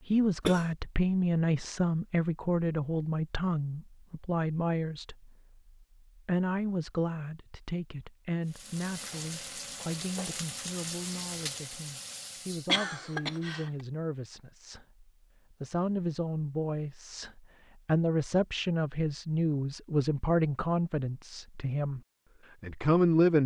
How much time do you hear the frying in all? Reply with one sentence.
You can hear the frying for 4 seconds altogether.